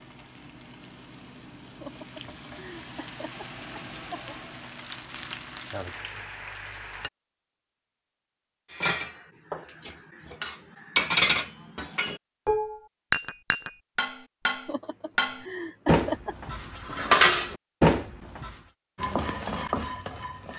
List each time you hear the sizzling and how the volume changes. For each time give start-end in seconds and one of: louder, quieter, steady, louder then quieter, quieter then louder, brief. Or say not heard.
0.0-7.1 louder
18.9-20.5 brief.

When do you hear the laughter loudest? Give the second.
16 s.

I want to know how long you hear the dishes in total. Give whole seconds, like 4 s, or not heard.
10 s.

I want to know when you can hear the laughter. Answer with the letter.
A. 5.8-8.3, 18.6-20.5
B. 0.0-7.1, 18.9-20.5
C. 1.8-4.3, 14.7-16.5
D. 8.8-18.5
C.